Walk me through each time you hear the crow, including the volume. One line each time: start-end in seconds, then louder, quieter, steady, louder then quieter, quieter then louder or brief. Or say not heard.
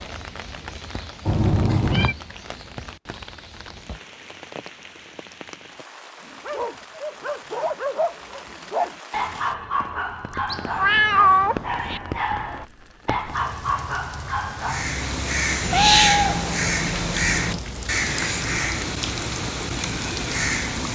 14.6-20.9 quieter.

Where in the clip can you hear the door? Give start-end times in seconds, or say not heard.
not heard.